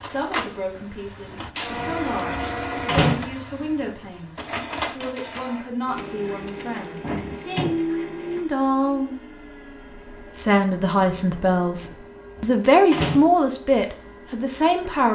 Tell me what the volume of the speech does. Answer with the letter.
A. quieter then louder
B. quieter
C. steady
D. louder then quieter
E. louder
E.